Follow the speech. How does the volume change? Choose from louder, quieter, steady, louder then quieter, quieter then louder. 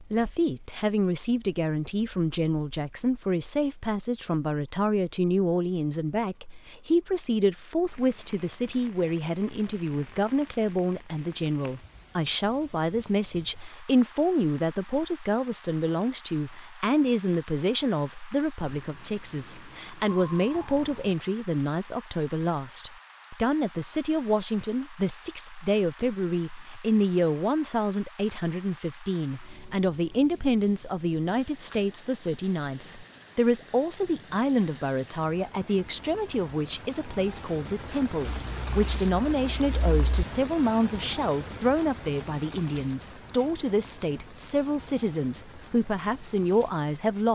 steady.